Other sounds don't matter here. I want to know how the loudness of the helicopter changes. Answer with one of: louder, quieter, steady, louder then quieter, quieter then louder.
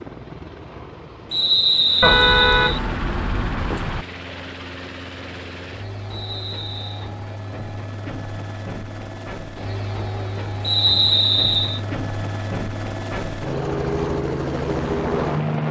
louder.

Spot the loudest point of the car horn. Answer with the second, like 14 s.
2 s.